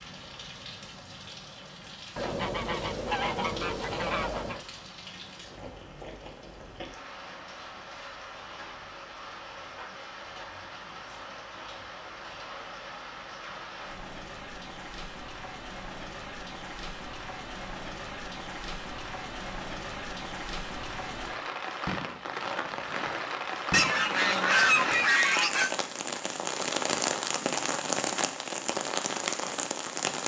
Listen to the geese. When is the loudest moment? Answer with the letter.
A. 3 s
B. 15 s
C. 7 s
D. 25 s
D.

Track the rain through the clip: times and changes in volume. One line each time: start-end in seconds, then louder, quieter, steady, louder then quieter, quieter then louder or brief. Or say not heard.
0.0-30.2 louder.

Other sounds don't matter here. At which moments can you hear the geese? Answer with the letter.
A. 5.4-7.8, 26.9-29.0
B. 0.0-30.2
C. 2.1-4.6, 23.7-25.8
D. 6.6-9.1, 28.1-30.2
C.